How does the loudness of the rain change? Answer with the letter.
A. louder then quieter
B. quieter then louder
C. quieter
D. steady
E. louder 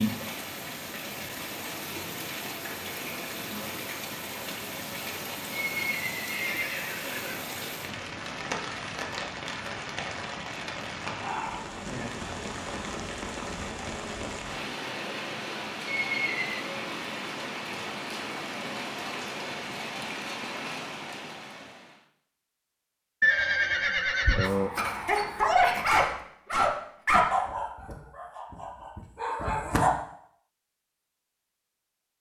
D.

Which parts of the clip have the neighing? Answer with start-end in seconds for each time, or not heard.
5.5-7.5, 15.8-16.8, 23.2-24.7.